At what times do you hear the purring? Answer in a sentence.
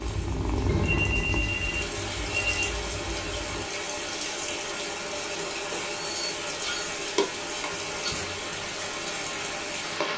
The purring can be heard from 0.0 to 3.7 s.